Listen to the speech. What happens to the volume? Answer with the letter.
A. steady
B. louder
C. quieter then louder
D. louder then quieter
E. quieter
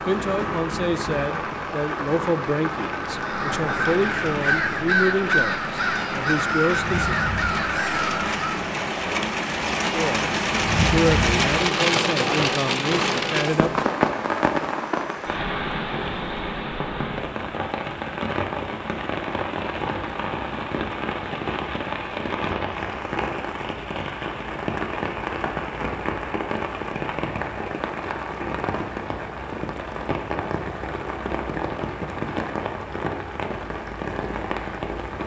A.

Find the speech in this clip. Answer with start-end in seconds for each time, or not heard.
0.1-7.2, 9.9-13.9.